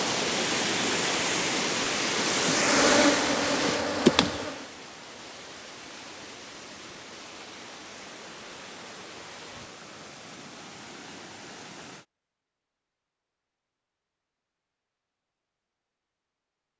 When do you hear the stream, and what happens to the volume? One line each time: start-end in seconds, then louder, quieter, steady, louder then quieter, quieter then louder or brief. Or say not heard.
0.0-12.1 quieter.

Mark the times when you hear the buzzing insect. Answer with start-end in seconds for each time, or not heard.
2.3-4.7.